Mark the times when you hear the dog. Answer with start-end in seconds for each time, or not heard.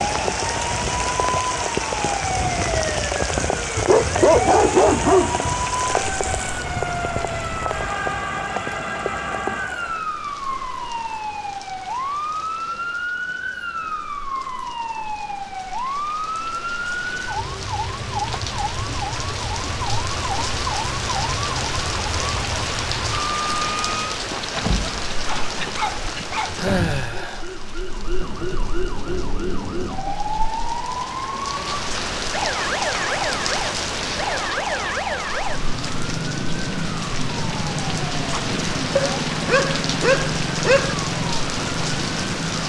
3.8-5.5, 24.3-26.6, 39.0-41.0.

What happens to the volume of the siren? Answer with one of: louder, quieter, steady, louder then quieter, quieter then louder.
steady.